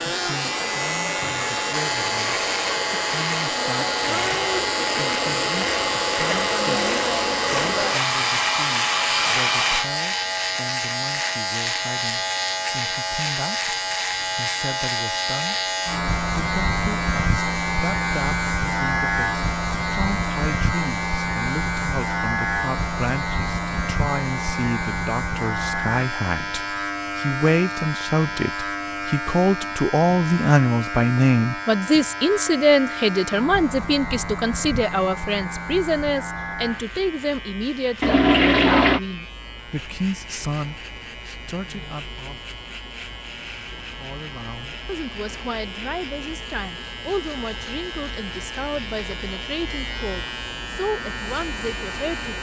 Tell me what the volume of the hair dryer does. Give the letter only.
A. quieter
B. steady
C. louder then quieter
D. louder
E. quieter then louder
D.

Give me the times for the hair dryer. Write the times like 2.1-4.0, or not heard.
0.0-9.9.